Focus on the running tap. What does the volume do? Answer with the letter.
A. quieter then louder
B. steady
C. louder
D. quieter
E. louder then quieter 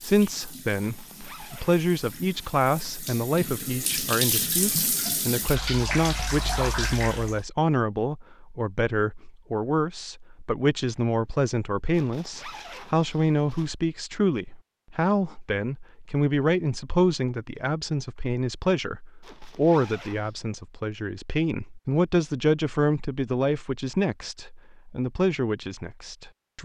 C.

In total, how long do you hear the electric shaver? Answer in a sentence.
The electric shaver can't be heard in this clip.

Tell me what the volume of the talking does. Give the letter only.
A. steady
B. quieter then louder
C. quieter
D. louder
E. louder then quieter
A.